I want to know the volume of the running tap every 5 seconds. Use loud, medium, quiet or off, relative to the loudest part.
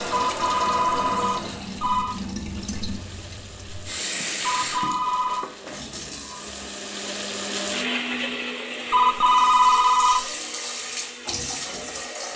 loud, medium, loud.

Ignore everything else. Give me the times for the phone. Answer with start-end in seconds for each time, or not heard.
0.1-2.2, 4.4-5.5, 8.9-10.3.